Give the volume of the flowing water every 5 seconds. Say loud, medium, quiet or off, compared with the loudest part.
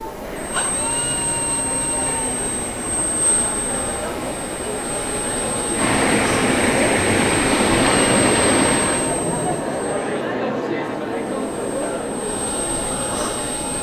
quiet, loud, off.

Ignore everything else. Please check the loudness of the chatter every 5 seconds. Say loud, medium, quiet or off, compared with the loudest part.
medium, loud, loud.